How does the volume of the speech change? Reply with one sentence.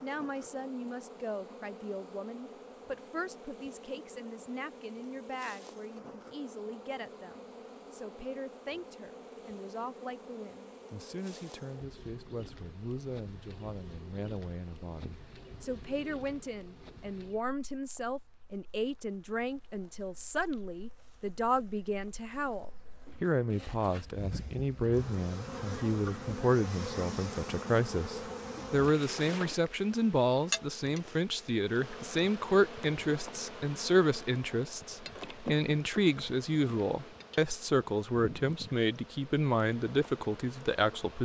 The loudness of the speech goes up.